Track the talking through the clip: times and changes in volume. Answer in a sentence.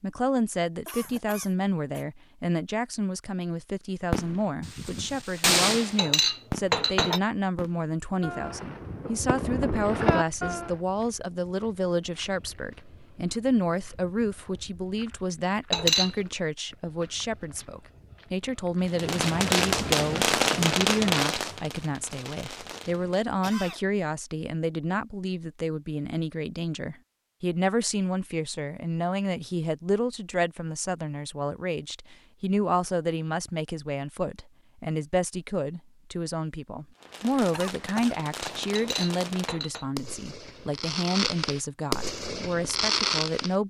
The talking can be heard from 0.0 to 43.6 s, at a steady volume.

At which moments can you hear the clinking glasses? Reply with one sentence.
The clinking glasses can be heard from 6.0 to 7.2 s, from 15.7 to 16.1 s and from 38.8 to 39.9 s.